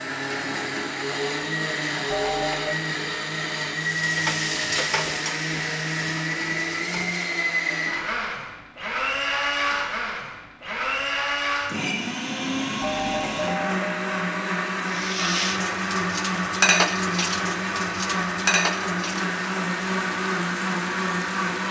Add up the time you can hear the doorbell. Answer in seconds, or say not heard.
3 s.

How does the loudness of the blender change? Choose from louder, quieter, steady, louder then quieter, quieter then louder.
steady.